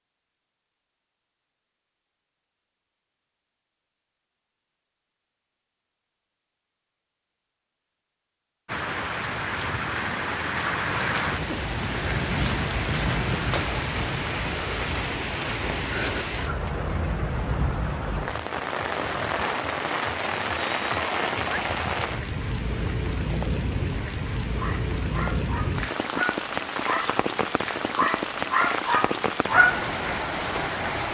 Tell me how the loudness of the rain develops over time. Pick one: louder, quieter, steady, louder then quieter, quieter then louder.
steady.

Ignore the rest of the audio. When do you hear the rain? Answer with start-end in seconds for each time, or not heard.
8.7-31.0.